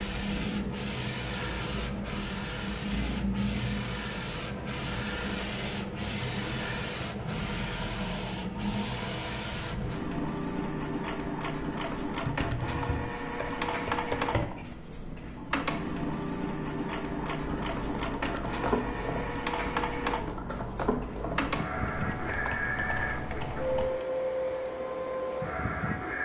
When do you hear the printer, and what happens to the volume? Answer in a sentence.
The printer can be heard from 0.0 to 26.2 s, at a steady volume.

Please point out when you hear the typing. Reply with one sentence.
The typing can be heard from 12.2 to 14.8 s and from 17.4 to 23.9 s.